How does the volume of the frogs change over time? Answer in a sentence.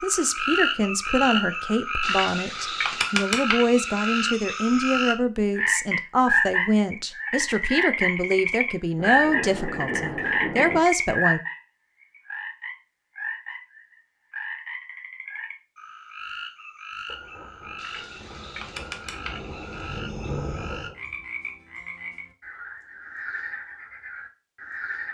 The volume of the frogs goes down.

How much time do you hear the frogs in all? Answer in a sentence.
The frogs can be heard for 25 seconds in total.